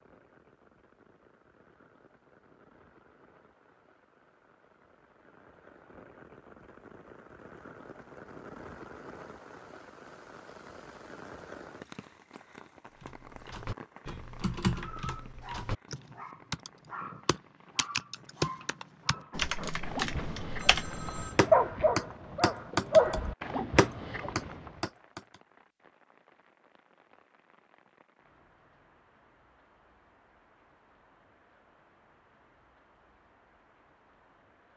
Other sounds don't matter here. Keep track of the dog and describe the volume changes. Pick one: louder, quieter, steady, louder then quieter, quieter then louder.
louder.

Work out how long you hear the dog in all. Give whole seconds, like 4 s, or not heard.
10 s.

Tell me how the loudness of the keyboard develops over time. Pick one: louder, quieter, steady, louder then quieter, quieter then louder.
louder.